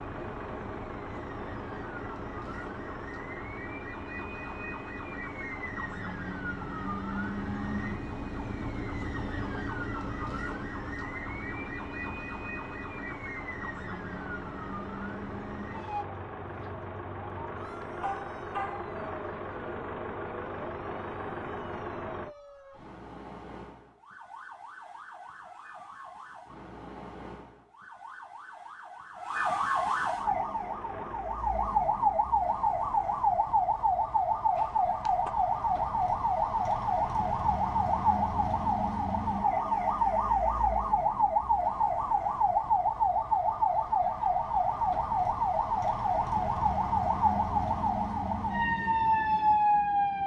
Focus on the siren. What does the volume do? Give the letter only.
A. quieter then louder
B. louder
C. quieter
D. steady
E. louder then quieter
B.